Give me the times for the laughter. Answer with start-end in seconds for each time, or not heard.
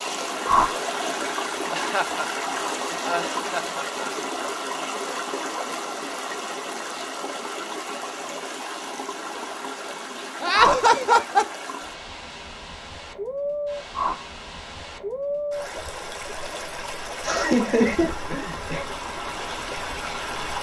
1.7-2.2, 3.0-4.1, 10.4-11.4, 17.2-18.9.